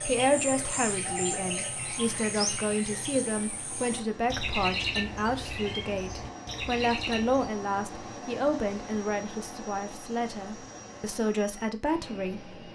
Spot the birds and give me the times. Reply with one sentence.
The birds can be heard from 0.0 to 7.5 s.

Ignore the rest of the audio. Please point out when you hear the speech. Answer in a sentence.
You can hear the speech from 0.0 to 12.5 s.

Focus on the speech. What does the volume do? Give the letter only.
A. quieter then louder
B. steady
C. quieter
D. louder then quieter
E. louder
B.